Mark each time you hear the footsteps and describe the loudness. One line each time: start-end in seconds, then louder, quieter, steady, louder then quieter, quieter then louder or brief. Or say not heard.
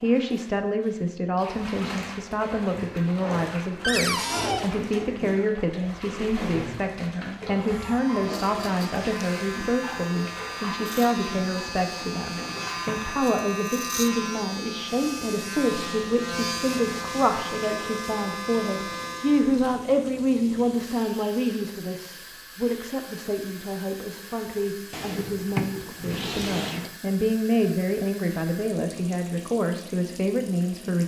not heard.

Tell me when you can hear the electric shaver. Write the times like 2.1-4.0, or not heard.
7.6-19.6.